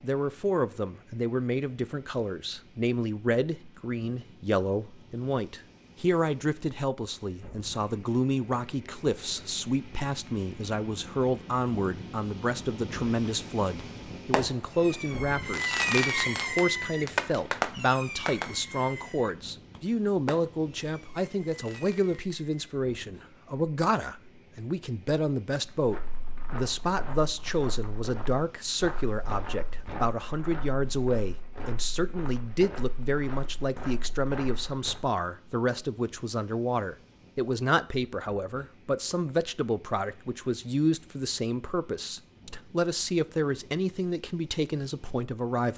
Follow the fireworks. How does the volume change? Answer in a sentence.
The volume of the fireworks goes down.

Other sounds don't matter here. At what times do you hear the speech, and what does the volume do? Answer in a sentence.
The speech can be heard from 0.0 to 45.7 s, at a steady volume.